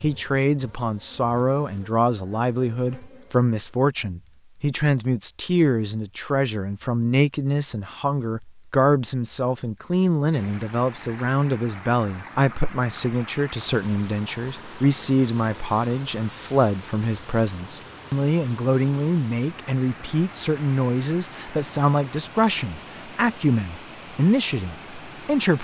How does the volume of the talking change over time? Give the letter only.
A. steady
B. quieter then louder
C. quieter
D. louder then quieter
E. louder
A.